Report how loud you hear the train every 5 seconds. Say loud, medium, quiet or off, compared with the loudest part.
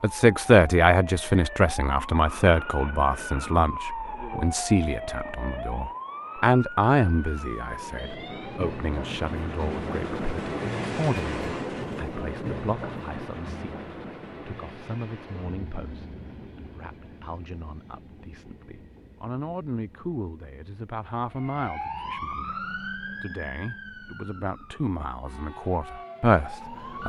off, loud, loud, quiet, quiet, quiet.